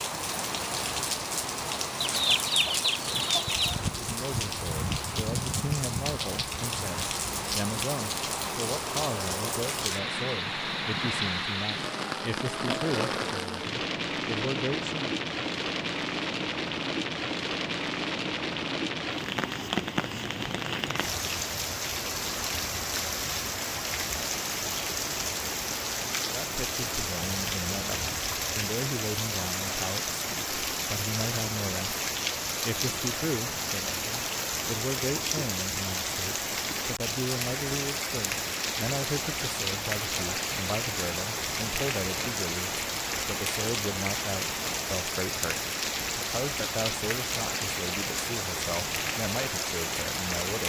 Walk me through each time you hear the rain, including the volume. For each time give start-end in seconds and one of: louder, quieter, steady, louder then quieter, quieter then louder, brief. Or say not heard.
0.0-50.6 steady.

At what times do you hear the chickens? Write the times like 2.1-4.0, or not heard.
2.0-3.8.